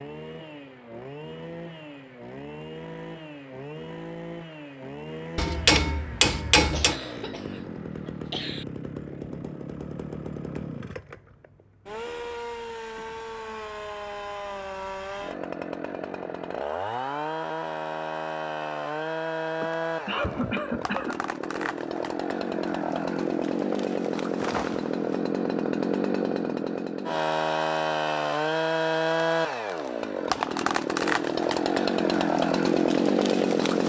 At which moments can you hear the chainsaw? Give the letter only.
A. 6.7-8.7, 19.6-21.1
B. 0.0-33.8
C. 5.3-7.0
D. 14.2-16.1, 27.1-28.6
B.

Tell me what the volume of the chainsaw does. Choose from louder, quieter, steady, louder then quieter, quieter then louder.
louder.